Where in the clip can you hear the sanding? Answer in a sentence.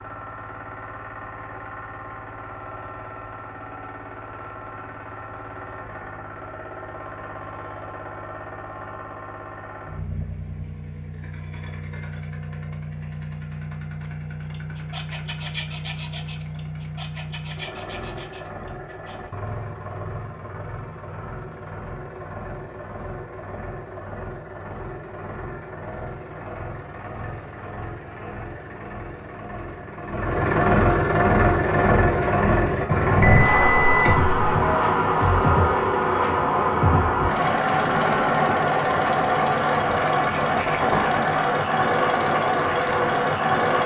You can hear the sanding from 14.0 to 19.3 s.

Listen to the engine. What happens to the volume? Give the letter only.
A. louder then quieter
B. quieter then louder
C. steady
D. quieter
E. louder
E.